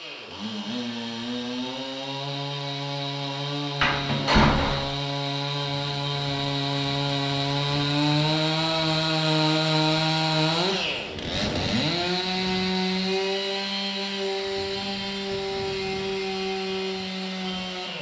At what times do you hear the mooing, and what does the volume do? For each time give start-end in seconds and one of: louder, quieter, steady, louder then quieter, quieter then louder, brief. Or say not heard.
not heard.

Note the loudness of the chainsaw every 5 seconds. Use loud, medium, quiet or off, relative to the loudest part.
medium, loud, loud, medium.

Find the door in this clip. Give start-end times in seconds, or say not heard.
3.8-4.9.